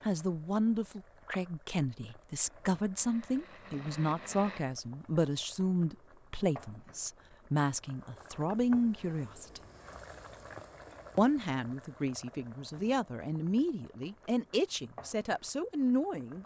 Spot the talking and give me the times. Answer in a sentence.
The talking can be heard from 0.0 to 9.6 s and from 11.2 to 16.4 s.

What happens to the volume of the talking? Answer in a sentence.
The loudness of the talking stays about the same.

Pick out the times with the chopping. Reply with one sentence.
You can't hear the chopping here.